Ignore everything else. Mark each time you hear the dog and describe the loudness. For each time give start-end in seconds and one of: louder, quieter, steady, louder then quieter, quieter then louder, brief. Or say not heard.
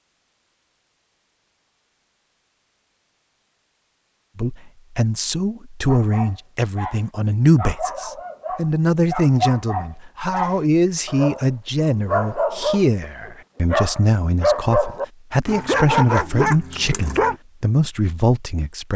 5.8-17.4 louder.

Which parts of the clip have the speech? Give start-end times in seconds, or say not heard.
4.3-18.9.